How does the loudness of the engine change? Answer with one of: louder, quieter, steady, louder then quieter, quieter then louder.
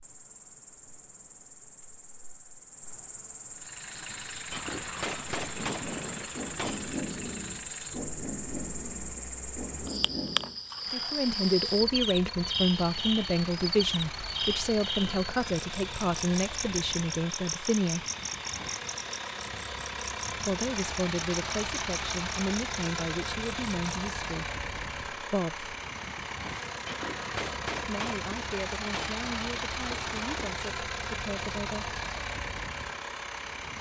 louder.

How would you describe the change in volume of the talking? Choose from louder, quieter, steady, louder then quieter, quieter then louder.
quieter.